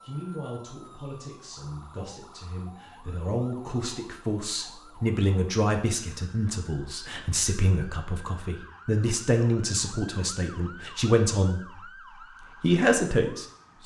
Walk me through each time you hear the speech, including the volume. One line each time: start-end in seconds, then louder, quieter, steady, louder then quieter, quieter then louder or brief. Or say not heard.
0.0-11.9 louder
12.6-13.8 brief.